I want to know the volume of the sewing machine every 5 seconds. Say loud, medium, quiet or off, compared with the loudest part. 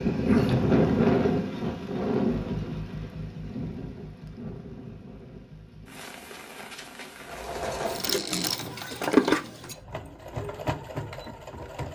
off, loud, medium.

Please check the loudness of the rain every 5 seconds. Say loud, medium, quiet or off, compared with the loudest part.
loud, quiet, off.